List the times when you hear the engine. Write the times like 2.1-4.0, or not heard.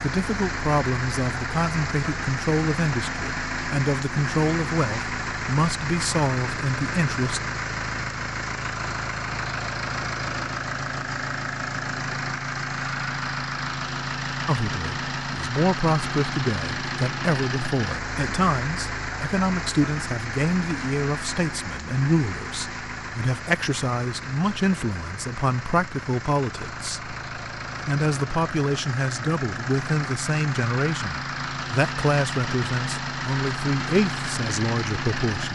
0.0-35.5.